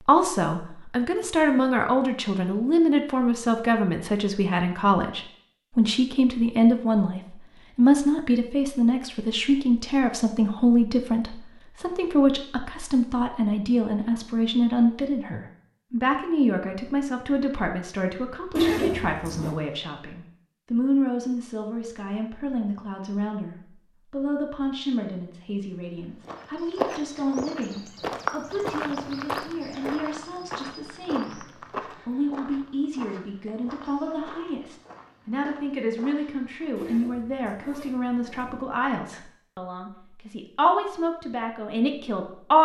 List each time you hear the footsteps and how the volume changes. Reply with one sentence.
You can hear the footsteps from 26.0 to 36.8 s, getting quieter.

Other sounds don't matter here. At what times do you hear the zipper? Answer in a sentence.
You can hear the zipper from 18.6 to 19.6 s and from 36.8 to 38.6 s.